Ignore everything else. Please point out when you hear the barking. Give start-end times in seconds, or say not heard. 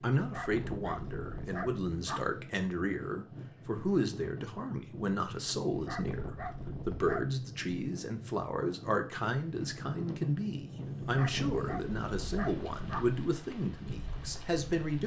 0.1-2.2, 5.7-7.3, 11.0-13.1.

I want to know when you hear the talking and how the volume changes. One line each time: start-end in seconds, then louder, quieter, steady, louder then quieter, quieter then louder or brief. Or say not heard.
0.0-15.0 steady.